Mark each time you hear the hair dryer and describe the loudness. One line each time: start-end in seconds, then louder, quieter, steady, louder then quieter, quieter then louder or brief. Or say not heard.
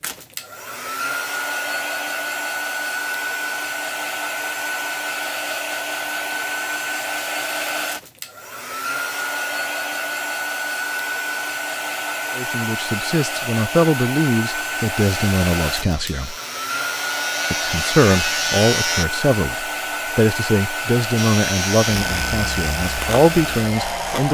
0.0-24.2 steady.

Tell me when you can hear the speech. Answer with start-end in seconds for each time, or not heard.
12.3-16.4, 17.5-24.2.